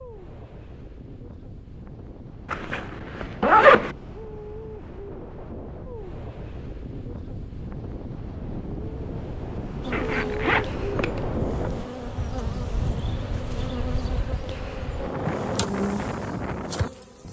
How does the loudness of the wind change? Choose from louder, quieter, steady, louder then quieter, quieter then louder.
louder.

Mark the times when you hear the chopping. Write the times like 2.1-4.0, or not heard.
not heard.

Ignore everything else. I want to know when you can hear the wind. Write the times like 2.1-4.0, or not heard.
0.0-17.2.